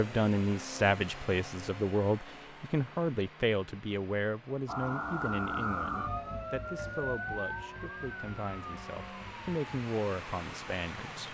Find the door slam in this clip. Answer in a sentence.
The door slam can't be heard in this clip.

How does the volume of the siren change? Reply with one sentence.
The loudness of the siren goes down.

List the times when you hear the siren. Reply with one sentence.
You can hear the siren from 4.7 to 11.2 s.